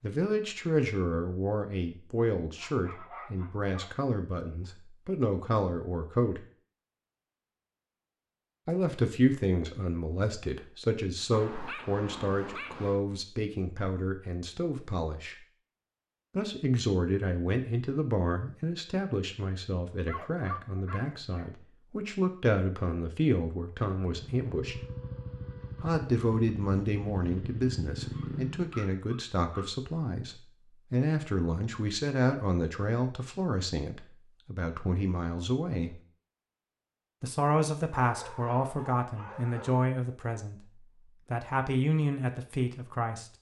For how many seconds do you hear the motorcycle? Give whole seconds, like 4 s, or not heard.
5 s.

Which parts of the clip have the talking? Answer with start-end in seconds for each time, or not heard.
0.0-6.5, 8.7-15.3, 16.4-24.8, 25.8-36.0, 37.2-43.2.